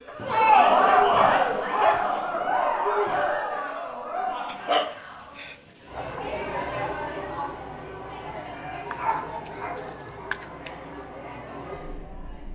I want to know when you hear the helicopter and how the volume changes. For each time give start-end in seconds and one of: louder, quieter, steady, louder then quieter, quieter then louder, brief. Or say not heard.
not heard.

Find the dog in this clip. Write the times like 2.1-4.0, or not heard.
0.1-2.2, 4.5-6.2, 8.9-10.7.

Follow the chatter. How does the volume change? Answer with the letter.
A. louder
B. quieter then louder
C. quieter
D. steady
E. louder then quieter
C.